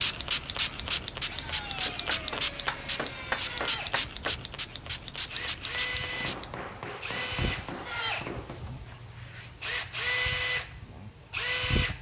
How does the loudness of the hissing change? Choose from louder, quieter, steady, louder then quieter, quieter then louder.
quieter.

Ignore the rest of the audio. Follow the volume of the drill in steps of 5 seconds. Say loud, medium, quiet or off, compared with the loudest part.
medium, medium, loud.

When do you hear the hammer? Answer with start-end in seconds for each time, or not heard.
1.9-4.3, 6.1-8.8.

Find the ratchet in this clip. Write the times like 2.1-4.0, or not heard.
not heard.